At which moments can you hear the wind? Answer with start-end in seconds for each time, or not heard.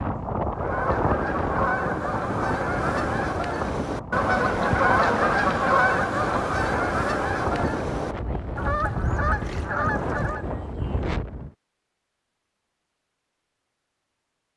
0.0-11.5.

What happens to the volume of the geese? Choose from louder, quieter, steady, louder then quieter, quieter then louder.
louder then quieter.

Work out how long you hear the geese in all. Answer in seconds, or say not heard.
10 s.